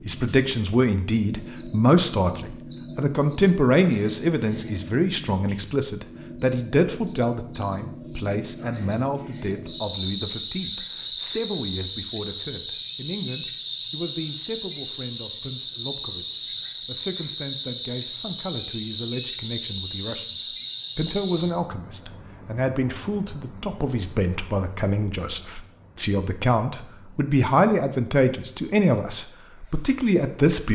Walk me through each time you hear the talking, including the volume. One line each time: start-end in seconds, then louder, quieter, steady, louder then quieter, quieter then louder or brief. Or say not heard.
0.1-30.6 quieter then louder.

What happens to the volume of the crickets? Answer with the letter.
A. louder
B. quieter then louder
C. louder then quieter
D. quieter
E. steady
D.